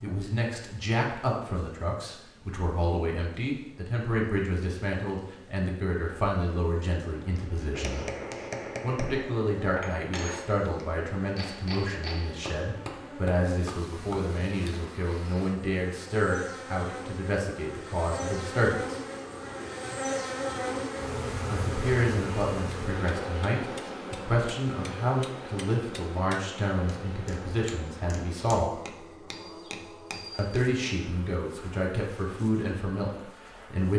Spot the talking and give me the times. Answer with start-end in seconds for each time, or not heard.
0.0-8.1, 8.8-19.0, 21.5-28.9, 30.4-33.9.